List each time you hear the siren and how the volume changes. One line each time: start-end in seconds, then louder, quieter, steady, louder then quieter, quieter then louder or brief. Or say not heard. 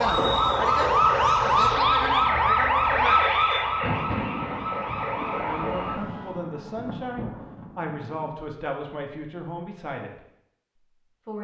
0.0-6.4 quieter.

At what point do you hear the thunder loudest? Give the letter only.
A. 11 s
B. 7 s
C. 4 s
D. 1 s
C.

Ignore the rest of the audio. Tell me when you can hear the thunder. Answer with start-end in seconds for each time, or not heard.
3.6-8.3.